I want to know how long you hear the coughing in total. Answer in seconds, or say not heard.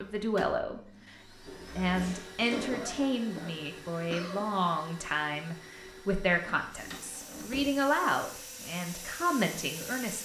2 s.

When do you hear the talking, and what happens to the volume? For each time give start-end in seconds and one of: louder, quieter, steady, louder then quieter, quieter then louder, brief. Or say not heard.
0.0-10.1 steady.